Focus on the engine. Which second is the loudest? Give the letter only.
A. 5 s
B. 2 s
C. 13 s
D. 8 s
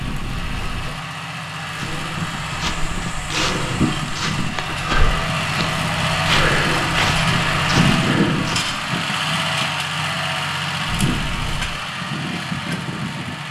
D.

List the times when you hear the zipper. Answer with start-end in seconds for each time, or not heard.
0.0-1.0, 11.1-11.8.